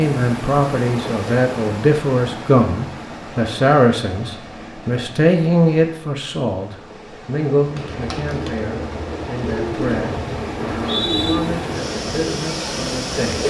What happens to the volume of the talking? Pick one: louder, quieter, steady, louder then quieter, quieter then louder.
quieter.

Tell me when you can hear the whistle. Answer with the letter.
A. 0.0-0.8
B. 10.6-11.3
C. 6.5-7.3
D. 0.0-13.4
B.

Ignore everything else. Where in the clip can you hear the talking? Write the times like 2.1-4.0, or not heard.
0.0-13.4.